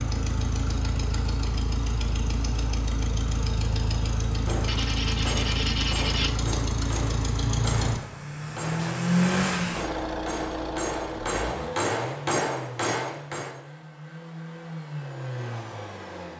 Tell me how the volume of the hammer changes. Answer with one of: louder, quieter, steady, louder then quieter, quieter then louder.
louder.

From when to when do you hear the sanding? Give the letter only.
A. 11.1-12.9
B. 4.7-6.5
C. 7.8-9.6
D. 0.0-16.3
B.